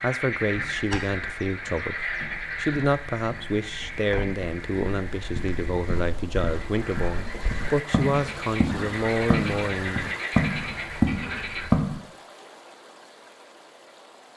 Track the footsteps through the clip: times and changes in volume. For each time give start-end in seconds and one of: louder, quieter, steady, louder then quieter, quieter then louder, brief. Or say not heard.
0.5-12.0 louder.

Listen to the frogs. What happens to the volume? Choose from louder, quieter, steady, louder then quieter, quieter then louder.
quieter then louder.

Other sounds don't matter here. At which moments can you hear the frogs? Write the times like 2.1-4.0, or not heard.
0.0-11.7.